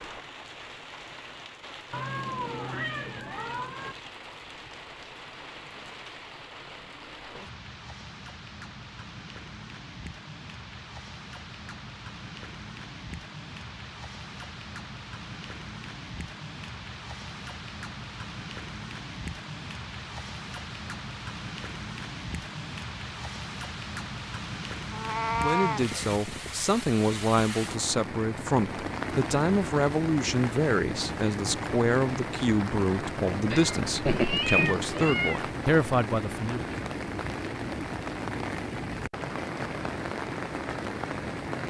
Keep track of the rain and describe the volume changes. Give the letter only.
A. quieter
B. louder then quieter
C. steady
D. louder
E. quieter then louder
D.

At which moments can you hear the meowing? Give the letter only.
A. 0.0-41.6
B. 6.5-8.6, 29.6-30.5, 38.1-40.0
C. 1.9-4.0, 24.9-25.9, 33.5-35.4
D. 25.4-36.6
C.